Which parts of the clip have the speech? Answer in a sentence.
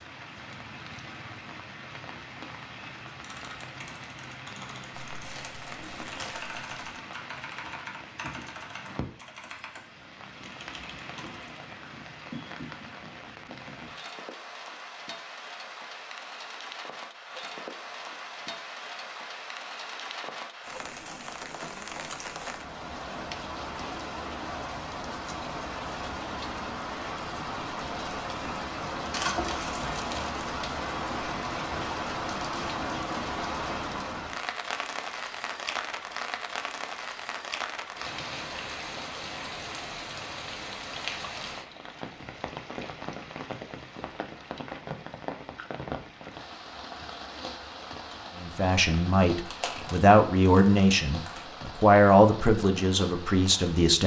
The speech can be heard from 48.4 to 54.0 s.